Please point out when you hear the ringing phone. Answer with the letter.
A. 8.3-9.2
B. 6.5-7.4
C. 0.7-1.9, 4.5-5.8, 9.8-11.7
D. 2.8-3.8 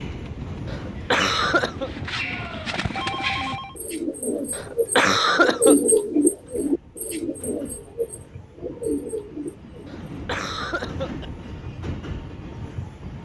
D.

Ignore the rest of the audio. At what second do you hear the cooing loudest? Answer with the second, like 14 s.
6 s.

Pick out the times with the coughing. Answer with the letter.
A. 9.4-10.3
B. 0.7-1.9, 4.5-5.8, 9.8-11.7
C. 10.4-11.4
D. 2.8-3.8
B.